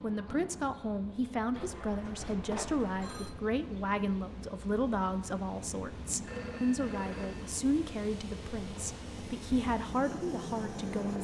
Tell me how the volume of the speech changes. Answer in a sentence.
The volume of the speech stays about the same.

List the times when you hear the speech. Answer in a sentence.
The speech can be heard from 0.0 to 11.2 s.